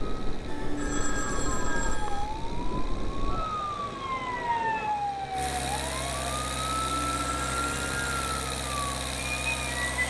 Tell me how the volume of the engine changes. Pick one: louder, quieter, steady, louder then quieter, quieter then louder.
louder.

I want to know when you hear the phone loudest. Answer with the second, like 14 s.
1 s.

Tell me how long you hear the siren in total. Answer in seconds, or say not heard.
10 s.